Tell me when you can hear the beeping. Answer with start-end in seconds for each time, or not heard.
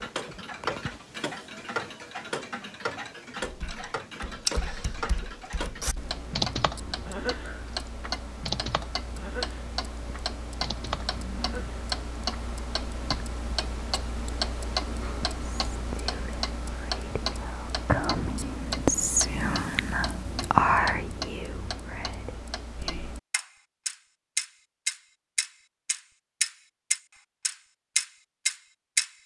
not heard.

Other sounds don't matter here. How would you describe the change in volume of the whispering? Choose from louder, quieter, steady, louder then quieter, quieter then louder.
louder then quieter.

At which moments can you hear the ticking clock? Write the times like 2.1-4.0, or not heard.
0.0-29.1.